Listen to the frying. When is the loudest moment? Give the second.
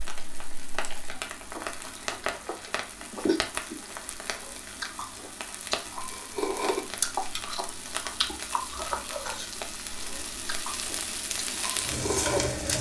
12 s.